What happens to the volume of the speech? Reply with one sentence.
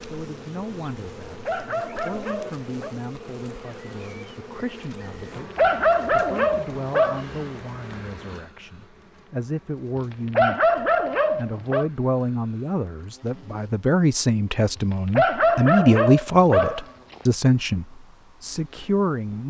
The volume of the speech goes up.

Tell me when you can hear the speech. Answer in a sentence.
The speech can be heard from 0.0 to 19.4 s.